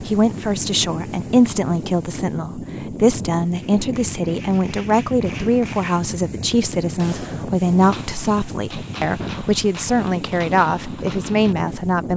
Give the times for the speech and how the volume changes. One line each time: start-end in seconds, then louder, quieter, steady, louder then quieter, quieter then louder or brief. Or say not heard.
0.0-12.1 steady.